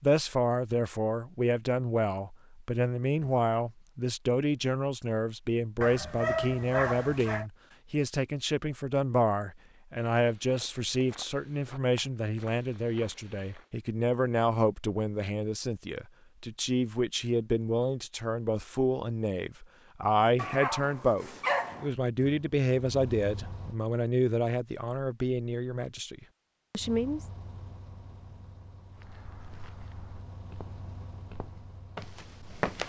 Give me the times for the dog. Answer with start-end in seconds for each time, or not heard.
5.8-7.5, 20.4-21.9.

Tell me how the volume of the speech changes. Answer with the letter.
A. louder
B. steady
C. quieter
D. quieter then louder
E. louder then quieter
B.